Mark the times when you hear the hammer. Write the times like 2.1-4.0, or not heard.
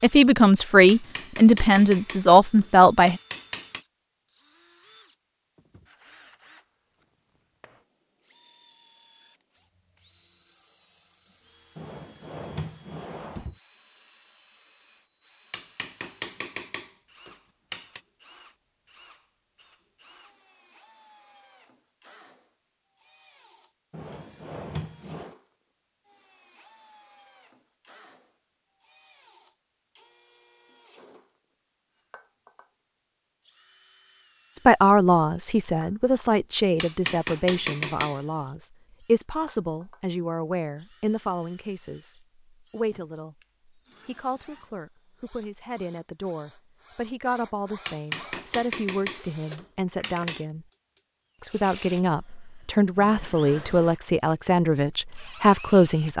0.8-3.9, 15.5-18.0, 36.8-38.2, 47.9-50.5.